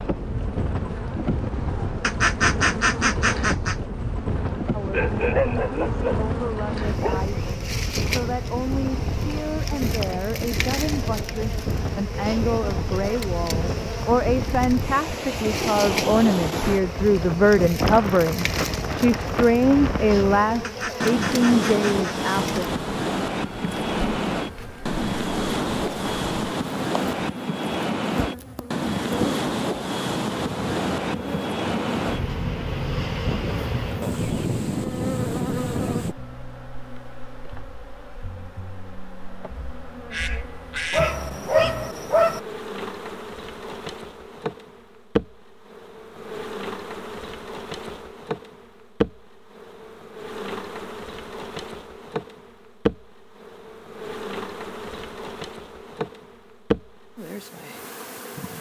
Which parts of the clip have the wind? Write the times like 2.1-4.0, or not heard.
0.0-36.1.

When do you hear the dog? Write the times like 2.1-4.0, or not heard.
4.8-7.2, 40.9-42.4.